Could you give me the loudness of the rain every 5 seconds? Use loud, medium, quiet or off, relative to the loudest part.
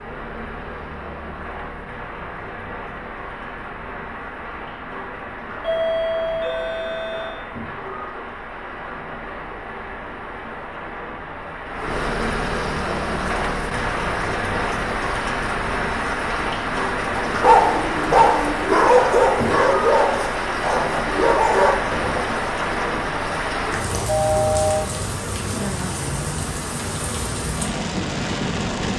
medium, medium, loud, loud, loud, loud.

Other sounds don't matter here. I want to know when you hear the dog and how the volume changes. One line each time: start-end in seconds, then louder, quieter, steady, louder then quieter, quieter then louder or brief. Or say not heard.
17.1-22.2 quieter then louder.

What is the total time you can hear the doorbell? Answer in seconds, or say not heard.
3 s.